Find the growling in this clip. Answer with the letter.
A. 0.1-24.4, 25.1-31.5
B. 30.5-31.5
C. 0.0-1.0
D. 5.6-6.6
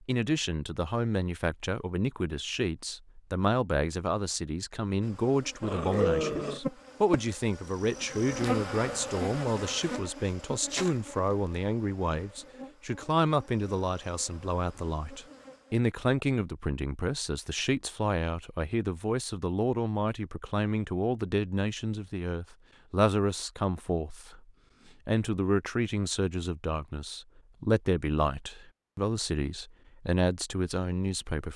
D.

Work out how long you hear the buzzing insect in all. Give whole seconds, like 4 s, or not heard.
11 s.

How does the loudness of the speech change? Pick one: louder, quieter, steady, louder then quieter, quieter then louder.
steady.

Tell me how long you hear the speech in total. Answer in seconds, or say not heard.
31 s.